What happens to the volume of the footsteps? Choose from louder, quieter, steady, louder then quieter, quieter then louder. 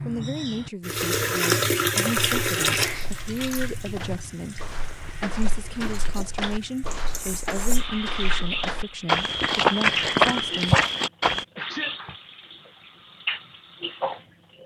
louder.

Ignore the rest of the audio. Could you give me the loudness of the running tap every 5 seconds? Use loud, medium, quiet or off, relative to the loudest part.
loud, medium, medium.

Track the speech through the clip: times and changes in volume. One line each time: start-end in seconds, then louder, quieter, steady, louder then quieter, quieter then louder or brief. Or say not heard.
0.1-10.8 steady.